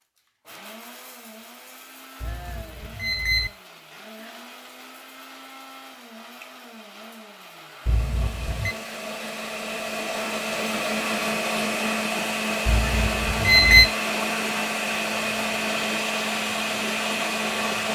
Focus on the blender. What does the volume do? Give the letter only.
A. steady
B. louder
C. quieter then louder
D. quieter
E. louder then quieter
B.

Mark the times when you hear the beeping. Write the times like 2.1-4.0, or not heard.
2.2-3.5, 7.8-8.8, 12.7-13.9.